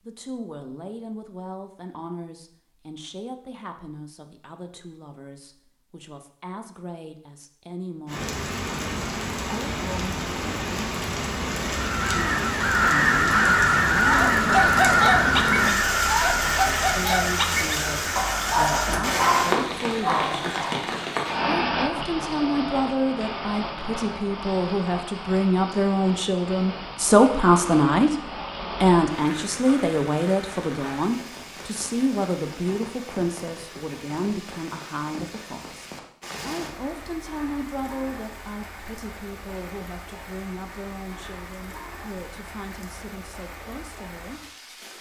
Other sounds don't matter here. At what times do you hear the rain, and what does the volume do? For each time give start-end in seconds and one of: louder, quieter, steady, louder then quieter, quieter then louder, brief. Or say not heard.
8.1-44.9 quieter.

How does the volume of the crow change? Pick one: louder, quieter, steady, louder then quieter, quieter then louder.
quieter.